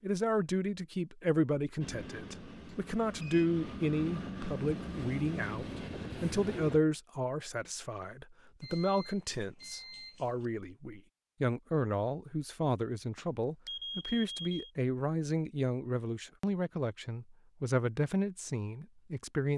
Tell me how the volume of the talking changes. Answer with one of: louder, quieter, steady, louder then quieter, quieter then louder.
steady.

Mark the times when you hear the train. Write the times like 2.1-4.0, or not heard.
1.8-6.8.